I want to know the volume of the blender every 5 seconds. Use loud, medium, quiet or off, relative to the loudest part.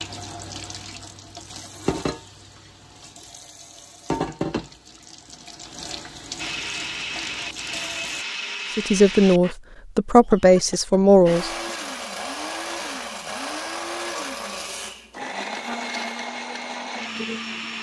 off, loud, loud, loud.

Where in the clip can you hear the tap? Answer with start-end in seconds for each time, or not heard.
0.0-8.2.